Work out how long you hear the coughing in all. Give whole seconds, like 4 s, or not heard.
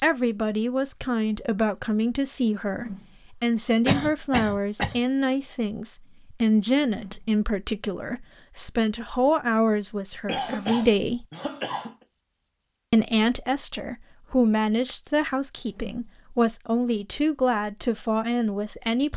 3 s.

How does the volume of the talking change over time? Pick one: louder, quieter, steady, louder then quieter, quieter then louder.
steady.